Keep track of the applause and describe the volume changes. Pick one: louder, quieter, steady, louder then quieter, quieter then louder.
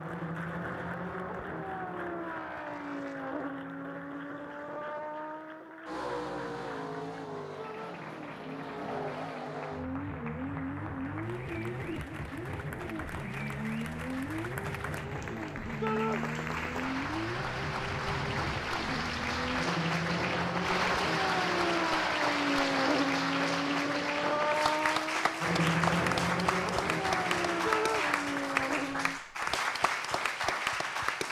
louder.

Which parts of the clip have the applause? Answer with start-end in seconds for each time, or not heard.
0.0-31.2.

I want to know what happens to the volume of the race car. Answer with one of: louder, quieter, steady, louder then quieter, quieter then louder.
louder.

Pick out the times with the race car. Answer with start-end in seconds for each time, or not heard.
0.0-29.2.